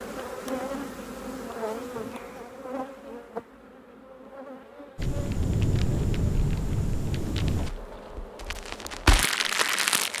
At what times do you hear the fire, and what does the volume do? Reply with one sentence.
You can hear the fire from 5.0 to 10.1 s, getting quieter then louder.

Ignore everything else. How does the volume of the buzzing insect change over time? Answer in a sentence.
The volume of the buzzing insect goes down.